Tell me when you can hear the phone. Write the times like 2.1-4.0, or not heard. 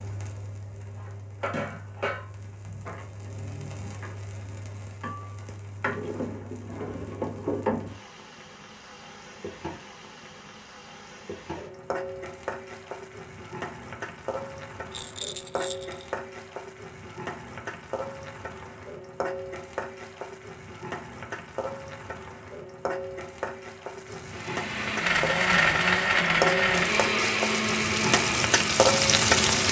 not heard.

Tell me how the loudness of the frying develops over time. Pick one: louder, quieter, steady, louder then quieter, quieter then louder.
louder.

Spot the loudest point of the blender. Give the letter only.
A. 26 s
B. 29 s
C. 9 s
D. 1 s
A.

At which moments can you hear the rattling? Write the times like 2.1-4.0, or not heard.
14.9-16.1.